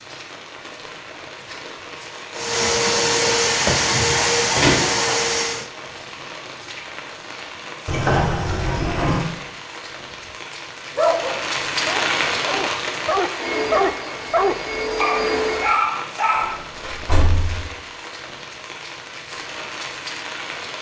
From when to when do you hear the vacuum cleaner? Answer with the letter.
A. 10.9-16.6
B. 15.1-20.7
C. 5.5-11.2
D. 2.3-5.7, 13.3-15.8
D.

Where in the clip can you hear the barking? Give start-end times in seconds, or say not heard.
10.9-16.6.